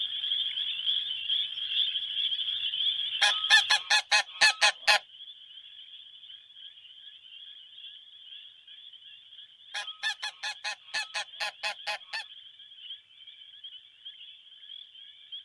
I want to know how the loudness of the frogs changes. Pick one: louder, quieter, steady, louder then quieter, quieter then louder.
quieter.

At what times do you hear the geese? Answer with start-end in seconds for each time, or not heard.
3.2-5.0, 9.7-12.2.